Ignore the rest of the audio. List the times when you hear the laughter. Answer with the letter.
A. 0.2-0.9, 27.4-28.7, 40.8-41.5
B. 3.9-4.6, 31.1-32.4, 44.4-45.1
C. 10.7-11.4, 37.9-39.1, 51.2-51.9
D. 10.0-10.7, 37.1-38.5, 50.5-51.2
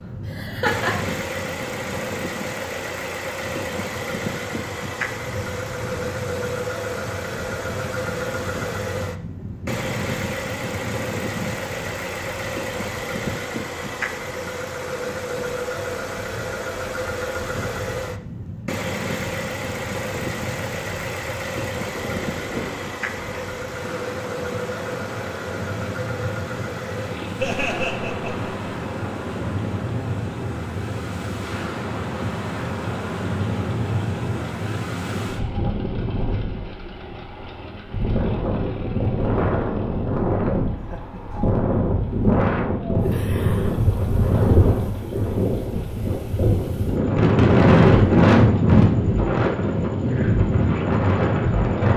A.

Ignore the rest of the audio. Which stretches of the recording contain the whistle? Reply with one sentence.
The whistle can't be heard in this clip.